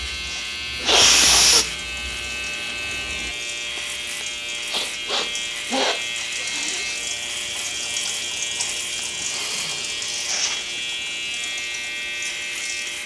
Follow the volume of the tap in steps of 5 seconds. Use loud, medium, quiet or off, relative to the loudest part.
medium, loud, loud.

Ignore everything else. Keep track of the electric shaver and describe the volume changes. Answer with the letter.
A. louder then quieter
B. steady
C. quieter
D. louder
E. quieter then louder
B.